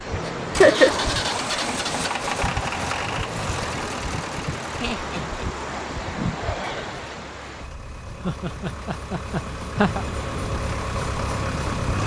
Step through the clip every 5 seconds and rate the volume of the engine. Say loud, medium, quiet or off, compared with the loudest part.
loud, medium, loud.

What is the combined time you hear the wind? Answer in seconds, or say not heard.
12 s.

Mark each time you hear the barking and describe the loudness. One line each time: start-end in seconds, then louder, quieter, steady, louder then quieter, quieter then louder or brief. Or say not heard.
not heard.